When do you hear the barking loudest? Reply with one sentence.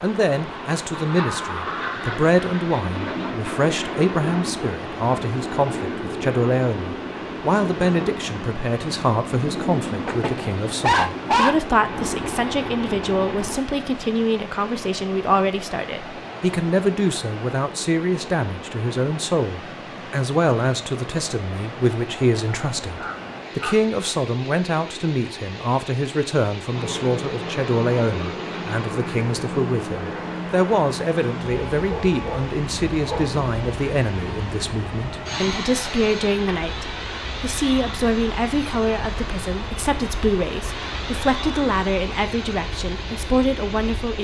The volume of the barking peaks at 11 seconds.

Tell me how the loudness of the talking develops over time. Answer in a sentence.
The loudness of the talking stays about the same.